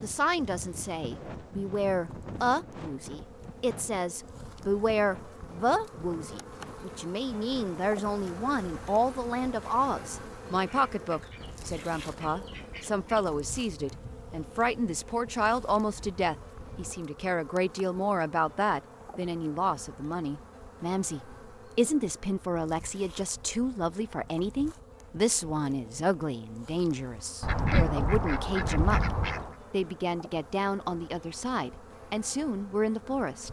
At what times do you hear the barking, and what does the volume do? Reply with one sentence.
The barking can't be heard in this clip.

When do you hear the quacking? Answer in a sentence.
You can hear the quacking from 10.6 to 13.2 s and from 27.4 to 29.6 s.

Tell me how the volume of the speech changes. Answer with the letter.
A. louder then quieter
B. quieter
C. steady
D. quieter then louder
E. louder
C.